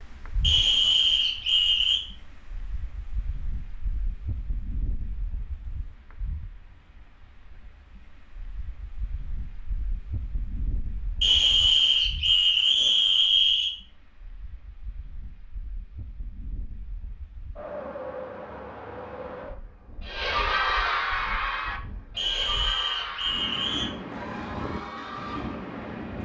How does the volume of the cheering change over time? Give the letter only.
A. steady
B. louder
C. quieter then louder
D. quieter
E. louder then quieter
D.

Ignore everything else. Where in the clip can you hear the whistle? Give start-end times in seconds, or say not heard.
0.4-2.0, 11.2-13.7, 22.1-23.9.